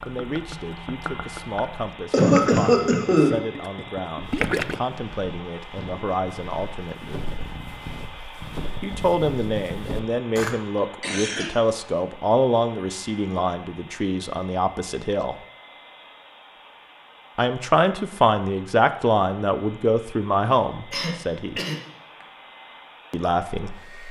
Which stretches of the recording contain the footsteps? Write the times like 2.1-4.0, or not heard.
4.2-10.6.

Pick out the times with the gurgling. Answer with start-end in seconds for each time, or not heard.
0.0-4.8.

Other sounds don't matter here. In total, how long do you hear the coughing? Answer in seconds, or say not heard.
3 s.